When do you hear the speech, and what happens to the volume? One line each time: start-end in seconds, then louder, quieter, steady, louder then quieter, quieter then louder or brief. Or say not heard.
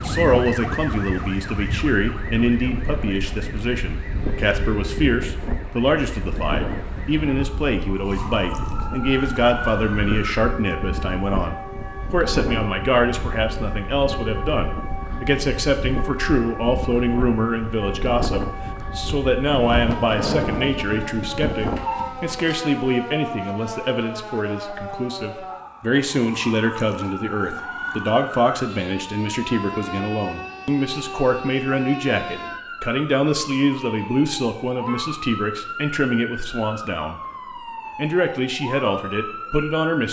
0.0-37.2 steady
38.0-40.0 brief.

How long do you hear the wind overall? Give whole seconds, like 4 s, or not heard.
22 s.